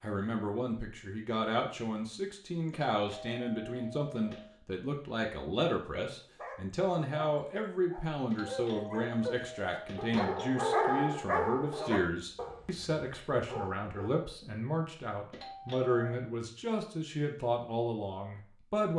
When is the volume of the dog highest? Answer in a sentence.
The loudest moment of the dog is at 11 seconds.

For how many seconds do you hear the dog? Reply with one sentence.
You can hear the dog for 8 seconds altogether.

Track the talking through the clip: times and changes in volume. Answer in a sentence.
You can hear the talking from 0.0 to 18.9 s, at a steady volume.